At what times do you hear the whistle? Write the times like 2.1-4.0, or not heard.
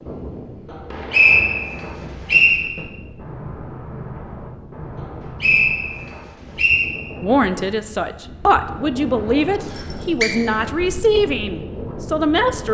0.7-2.6, 5.4-6.9, 9.6-10.3.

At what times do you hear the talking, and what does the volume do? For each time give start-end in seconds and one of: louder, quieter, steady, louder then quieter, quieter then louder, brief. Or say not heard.
7.2-12.7 steady.